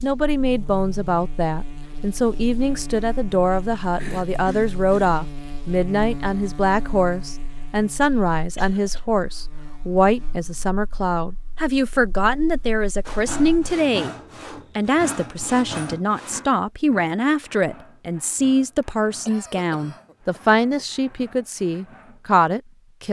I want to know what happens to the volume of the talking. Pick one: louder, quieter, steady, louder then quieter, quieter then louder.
steady.